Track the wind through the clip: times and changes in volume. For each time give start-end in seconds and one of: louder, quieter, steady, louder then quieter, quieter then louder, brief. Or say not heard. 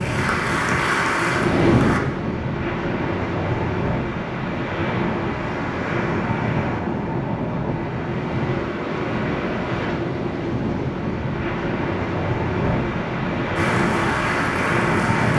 0.0-15.3 steady.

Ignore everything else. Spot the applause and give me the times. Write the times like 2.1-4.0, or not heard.
0.0-2.0, 13.6-15.3.